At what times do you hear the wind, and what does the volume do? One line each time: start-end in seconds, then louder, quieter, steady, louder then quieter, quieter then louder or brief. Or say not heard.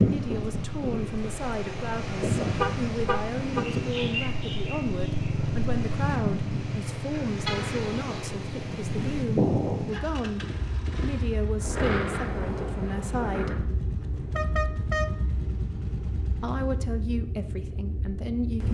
0.0-18.6 quieter.